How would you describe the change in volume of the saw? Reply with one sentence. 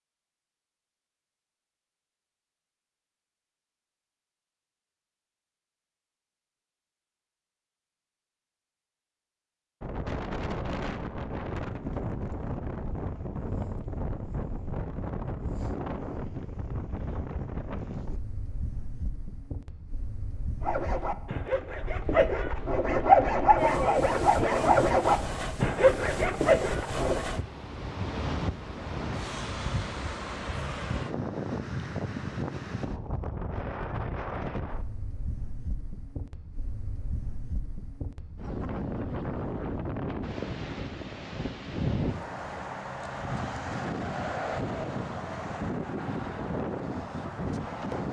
The volume of the saw goes up.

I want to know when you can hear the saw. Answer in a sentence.
The saw can be heard from 20.6 to 27.2 s.